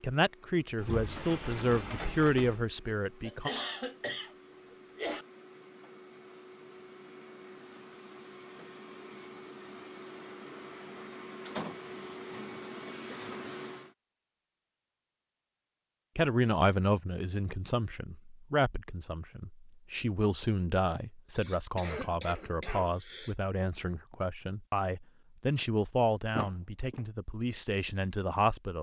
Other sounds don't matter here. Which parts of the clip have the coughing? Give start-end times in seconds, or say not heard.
3.2-5.2, 12.3-13.6, 20.9-23.4.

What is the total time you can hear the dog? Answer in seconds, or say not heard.
not heard.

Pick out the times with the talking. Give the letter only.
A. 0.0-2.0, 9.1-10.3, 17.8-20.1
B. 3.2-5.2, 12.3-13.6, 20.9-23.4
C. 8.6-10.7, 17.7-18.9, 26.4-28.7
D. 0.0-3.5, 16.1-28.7
D.